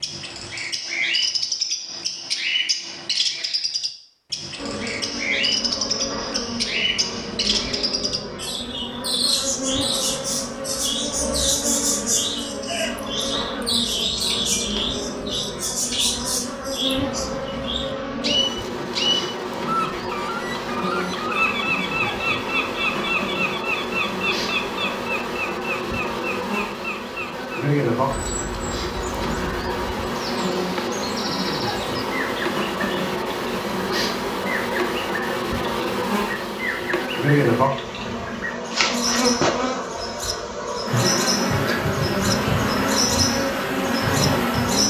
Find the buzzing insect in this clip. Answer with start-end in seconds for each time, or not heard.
4.5-44.8.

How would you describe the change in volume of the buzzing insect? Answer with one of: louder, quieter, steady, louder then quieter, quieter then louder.
louder.